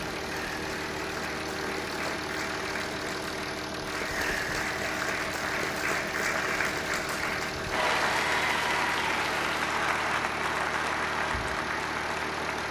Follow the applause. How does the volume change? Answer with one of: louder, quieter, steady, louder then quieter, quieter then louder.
louder.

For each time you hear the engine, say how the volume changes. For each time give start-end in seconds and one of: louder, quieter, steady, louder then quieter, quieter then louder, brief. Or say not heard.
0.0-12.6 steady.